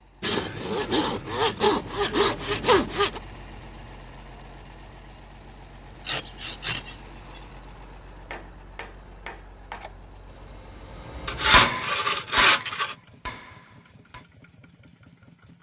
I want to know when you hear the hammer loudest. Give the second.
12 s.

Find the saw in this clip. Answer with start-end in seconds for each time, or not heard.
0.2-3.2, 6.0-7.4, 11.2-12.9.